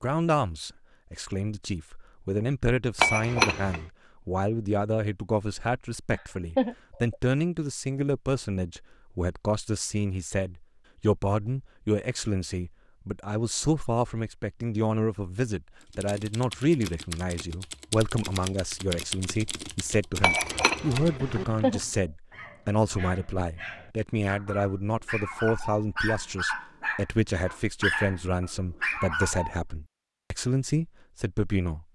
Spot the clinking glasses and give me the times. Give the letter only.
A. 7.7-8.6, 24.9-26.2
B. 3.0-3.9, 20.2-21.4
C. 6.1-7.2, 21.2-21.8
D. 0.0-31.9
B.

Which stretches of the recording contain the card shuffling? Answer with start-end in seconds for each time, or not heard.
not heard.